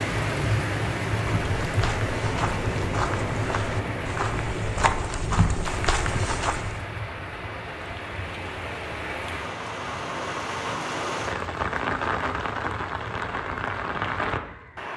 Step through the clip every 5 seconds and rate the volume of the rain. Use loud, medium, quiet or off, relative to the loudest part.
loud, medium, loud.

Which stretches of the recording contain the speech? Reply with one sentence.
The speech can't be heard in this clip.